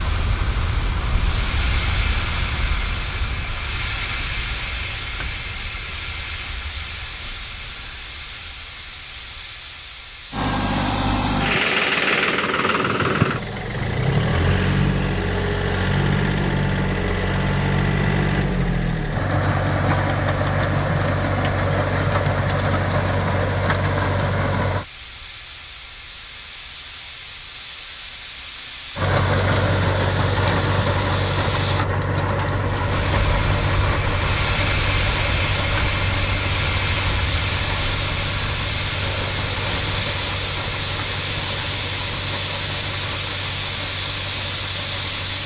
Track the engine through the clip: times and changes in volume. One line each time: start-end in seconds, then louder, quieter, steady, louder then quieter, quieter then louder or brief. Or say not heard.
10.3-24.9 steady
28.9-45.4 quieter.